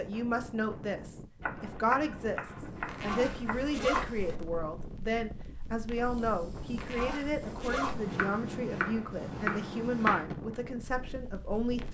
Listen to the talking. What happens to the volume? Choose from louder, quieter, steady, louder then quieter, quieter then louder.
steady.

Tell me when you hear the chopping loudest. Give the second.
10 s.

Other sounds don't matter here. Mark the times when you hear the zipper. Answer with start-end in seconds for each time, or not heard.
2.9-4.3, 6.8-8.2.